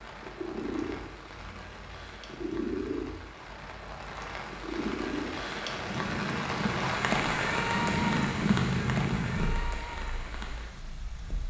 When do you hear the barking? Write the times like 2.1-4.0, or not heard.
not heard.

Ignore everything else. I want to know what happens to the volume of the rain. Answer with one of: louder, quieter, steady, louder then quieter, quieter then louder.
louder then quieter.